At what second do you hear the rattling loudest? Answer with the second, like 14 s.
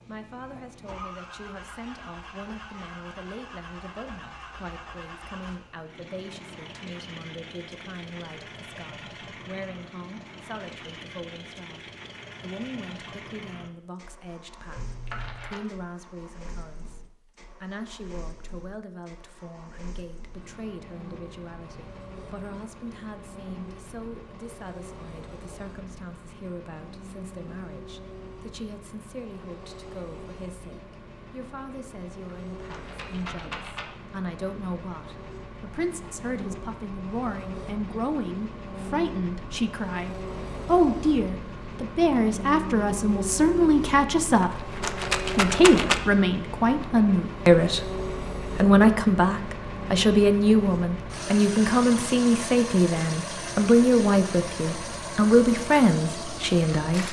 46 s.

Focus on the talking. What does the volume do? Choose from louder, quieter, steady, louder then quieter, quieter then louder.
louder.